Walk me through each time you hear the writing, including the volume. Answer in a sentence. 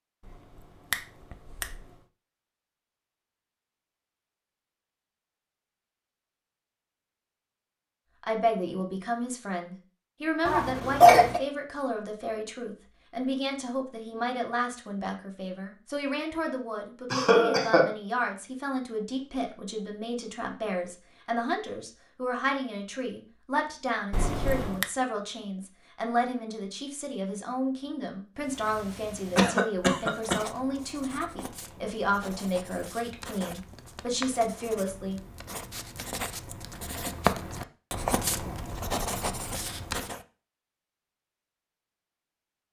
You can hear the writing from 28.4 to 40.2 s, getting louder.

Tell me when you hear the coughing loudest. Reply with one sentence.
The volume of the coughing peaks at 11 seconds.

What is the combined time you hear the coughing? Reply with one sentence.
The coughing can be heard for 3 seconds in total.